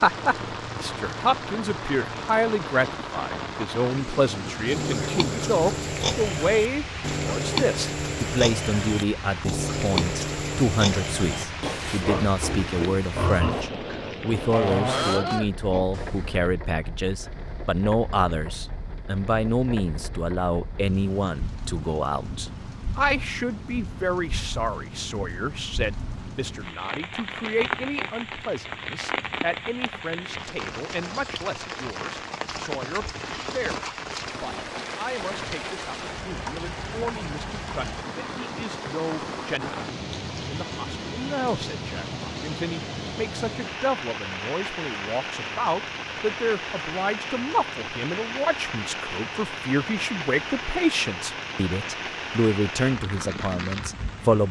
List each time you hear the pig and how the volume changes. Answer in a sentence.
You can hear the pig from 4.7 to 16.4 s, at a steady volume.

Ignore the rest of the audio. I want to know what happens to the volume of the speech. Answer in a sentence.
The volume of the speech goes down, then up.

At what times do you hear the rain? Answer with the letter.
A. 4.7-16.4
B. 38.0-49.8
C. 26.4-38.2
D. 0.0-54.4
D.